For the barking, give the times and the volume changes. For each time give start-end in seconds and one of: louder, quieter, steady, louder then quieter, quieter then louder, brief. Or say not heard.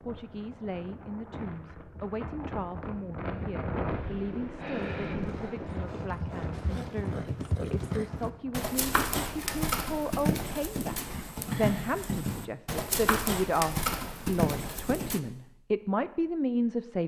not heard.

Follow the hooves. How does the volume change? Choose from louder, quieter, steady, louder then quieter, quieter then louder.
louder.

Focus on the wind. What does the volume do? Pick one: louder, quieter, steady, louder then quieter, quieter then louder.
louder then quieter.